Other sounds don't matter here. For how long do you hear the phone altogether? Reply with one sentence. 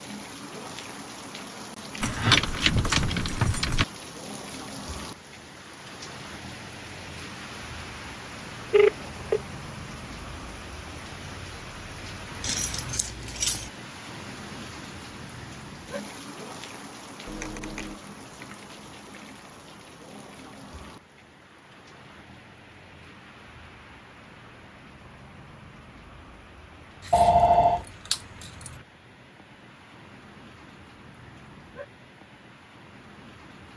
You can hear the phone for 2 seconds altogether.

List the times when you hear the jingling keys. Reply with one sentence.
You can hear the jingling keys from 2.0 to 3.9 s, from 12.4 to 13.7 s and from 27.0 to 28.8 s.